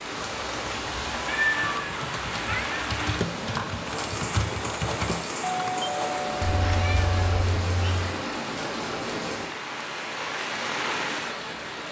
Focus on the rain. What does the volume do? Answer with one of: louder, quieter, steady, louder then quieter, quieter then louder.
steady.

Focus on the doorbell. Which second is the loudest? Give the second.
6 s.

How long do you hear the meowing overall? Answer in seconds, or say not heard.
3 s.